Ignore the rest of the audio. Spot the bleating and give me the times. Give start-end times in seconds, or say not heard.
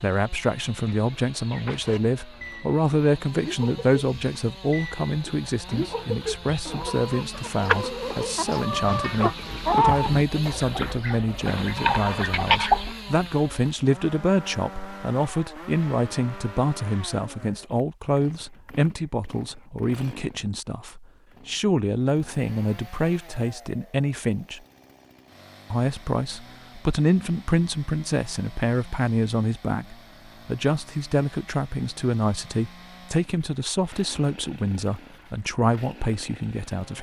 not heard.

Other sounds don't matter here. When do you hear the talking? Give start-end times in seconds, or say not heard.
0.0-24.6, 25.7-36.9.